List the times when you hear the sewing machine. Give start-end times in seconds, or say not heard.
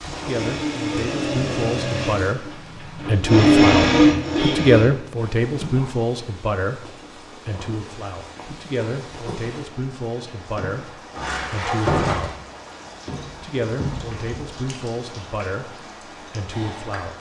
0.1-5.2.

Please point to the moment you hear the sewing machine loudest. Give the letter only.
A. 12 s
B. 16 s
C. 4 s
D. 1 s
C.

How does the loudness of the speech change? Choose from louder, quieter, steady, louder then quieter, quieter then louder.
louder then quieter.